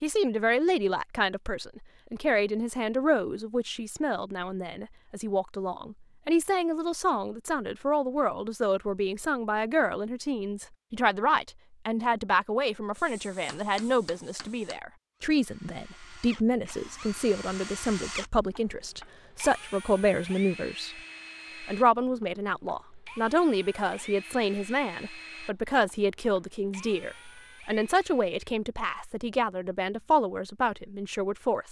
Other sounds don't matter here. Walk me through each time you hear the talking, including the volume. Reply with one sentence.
The talking can be heard from 0.0 to 21.0 s, at a steady volume; and from 21.6 to 31.6 s, at a steady volume.